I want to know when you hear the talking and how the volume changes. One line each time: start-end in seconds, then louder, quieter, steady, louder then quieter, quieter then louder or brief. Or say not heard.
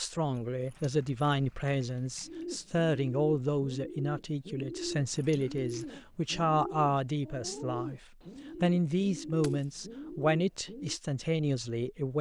0.0-12.1 steady.